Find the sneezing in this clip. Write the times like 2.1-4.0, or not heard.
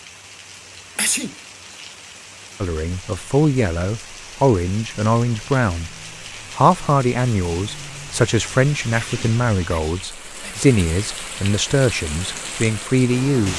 0.9-1.4, 9.0-10.7.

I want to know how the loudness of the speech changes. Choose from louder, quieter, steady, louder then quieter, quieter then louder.
steady.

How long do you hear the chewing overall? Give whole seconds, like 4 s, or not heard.
not heard.